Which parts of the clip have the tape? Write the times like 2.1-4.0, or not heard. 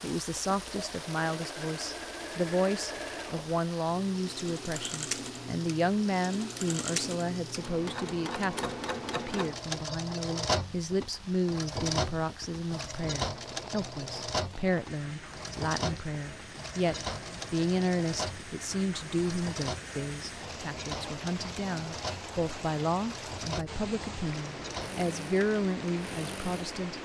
not heard.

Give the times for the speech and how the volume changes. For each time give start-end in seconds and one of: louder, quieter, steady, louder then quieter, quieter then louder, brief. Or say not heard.
0.0-27.0 steady.